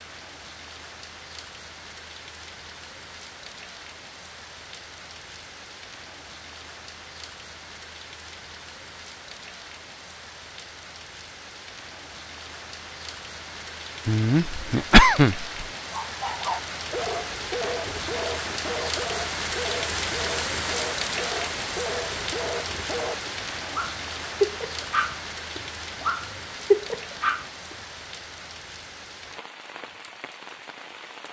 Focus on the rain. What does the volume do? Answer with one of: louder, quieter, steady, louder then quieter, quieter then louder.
louder then quieter.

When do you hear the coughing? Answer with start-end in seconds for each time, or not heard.
14.1-15.4.